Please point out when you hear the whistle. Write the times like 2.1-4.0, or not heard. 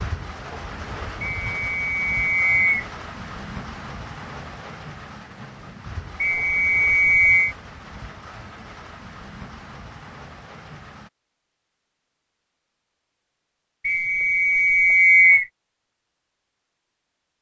1.2-2.9, 6.2-7.5, 13.8-15.4.